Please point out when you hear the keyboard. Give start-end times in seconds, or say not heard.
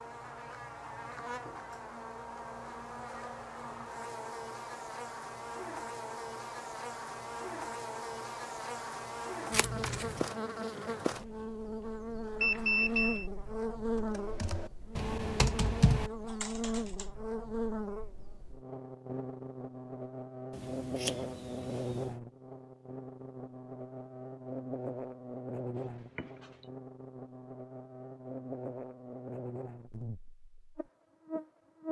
13.9-17.1.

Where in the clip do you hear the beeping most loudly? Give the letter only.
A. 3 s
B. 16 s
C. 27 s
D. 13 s
D.